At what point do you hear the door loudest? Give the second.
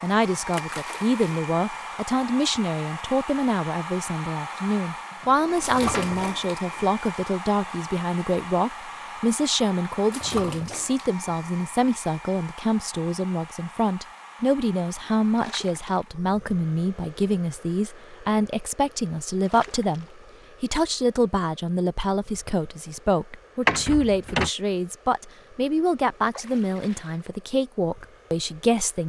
24 s.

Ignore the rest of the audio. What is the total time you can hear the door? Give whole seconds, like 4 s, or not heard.
2 s.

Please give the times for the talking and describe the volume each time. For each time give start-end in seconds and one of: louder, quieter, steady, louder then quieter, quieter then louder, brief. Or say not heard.
0.0-29.0 steady.